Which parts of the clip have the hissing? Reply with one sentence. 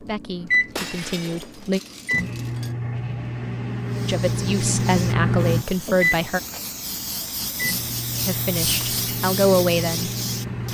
The hissing can be heard from 3.9 to 10.6 s.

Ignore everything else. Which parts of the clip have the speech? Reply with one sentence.
You can hear the speech from 0.0 to 1.8 s, from 4.0 to 6.4 s and from 8.2 to 10.1 s.